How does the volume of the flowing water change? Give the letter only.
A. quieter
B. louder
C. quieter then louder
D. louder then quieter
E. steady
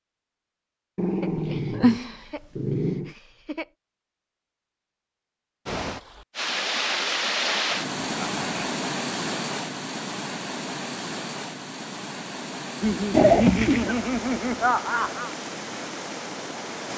A.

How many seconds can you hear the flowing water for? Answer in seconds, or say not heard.
11 s.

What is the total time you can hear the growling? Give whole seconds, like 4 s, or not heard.
3 s.